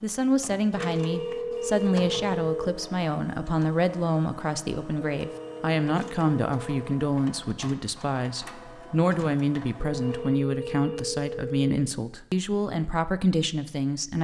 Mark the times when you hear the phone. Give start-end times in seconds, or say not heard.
0.8-2.6, 5.2-6.9, 9.8-11.7.